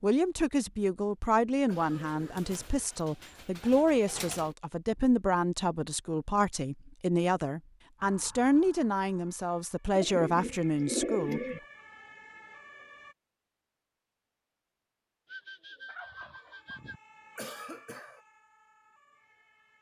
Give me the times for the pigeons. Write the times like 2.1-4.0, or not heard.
1.8-4.5, 9.9-11.6, 15.2-17.0.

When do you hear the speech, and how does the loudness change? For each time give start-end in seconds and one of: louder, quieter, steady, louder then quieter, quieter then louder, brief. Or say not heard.
0.0-11.4 steady.